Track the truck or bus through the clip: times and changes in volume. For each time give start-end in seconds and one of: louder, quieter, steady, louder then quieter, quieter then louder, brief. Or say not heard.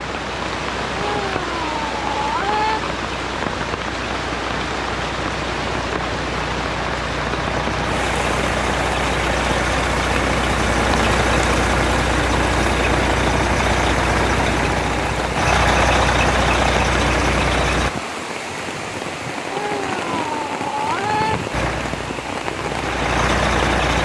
0.0-17.9 louder
21.5-24.0 brief.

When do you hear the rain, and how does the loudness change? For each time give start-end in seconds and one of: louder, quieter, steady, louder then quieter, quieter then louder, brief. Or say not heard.
0.0-23.9 steady.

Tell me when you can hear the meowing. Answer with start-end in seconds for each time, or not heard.
0.9-2.8, 19.5-21.4.